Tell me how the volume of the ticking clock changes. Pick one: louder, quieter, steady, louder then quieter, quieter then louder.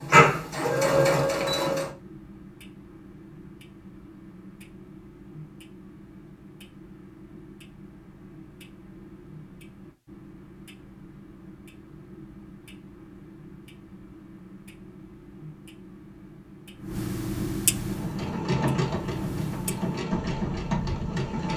louder.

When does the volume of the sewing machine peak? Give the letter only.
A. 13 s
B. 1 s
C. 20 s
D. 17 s
B.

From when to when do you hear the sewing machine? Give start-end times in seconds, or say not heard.
0.0-1.9, 17.8-21.5.